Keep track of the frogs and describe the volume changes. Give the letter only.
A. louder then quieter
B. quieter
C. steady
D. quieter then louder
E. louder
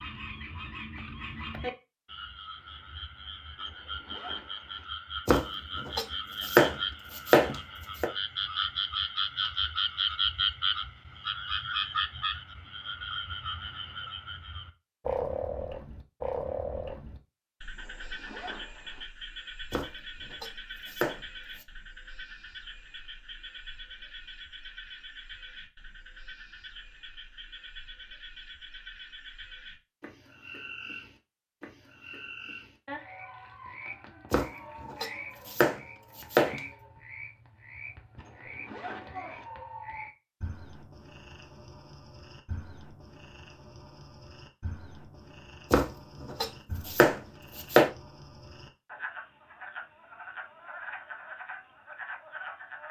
B.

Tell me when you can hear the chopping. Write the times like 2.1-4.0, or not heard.
5.2-8.1, 19.7-21.6, 34.3-36.6, 45.7-47.9.